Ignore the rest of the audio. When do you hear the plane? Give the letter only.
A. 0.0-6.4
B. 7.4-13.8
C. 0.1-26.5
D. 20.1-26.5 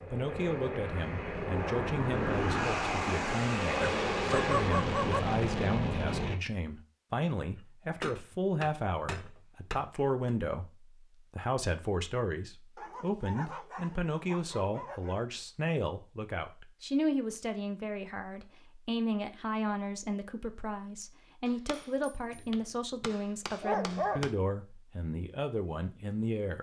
A.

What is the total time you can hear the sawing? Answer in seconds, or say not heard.
not heard.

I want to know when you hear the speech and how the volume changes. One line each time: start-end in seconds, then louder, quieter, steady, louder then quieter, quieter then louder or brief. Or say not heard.
0.1-26.5 steady.